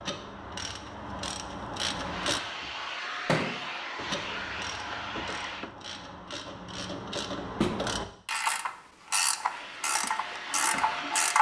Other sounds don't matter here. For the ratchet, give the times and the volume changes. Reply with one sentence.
The ratchet can be heard briefly from 0.0 to 2.4 s; and from 4.0 to 11.3 s, getting louder.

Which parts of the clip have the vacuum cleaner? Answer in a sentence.
You can hear the vacuum cleaner from 1.9 to 5.8 s and from 9.3 to 11.3 s.